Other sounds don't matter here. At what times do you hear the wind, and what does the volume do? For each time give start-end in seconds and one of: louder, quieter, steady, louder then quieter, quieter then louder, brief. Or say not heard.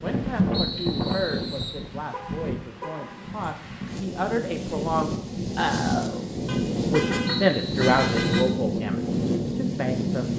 0.0-10.3 quieter then louder.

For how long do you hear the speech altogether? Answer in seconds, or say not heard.
10 s.